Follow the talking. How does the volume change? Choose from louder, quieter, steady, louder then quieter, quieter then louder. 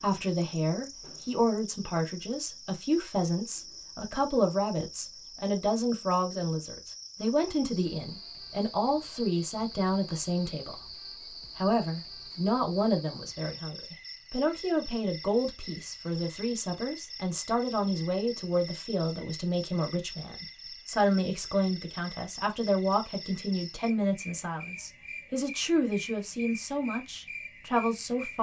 steady.